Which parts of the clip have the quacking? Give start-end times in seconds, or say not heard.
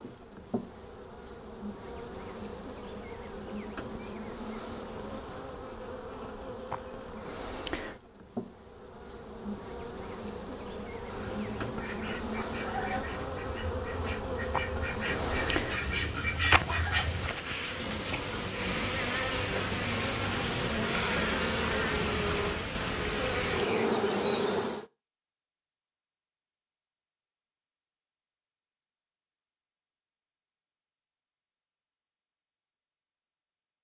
11.1-17.3.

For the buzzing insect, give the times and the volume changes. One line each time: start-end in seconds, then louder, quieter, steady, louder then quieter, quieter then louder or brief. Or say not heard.
0.0-24.9 louder.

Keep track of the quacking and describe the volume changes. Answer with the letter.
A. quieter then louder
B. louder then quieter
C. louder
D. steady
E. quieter
C.